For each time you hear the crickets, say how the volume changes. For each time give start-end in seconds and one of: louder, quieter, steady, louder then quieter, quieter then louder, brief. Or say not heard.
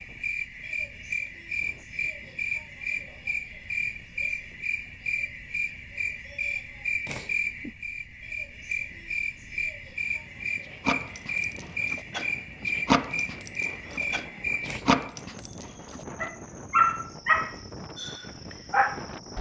0.0-19.3 quieter.